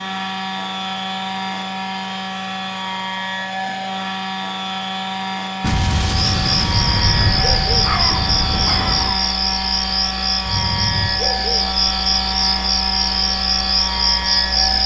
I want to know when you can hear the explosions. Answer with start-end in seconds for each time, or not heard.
5.6-9.2.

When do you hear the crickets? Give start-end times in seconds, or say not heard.
6.2-14.8.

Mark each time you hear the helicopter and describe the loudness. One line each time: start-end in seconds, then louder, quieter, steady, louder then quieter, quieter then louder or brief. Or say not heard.
0.0-14.8 steady.